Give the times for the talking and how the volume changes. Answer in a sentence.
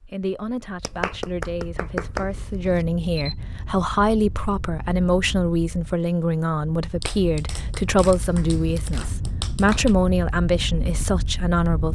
You can hear the talking from 0.1 to 11.8 s, getting louder.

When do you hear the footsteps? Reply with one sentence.
You can't hear the footsteps here.